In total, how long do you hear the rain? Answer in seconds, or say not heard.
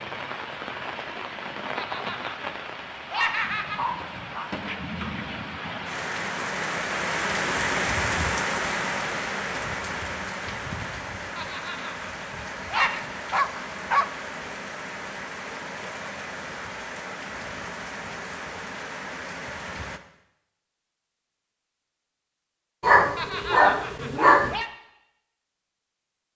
20 s.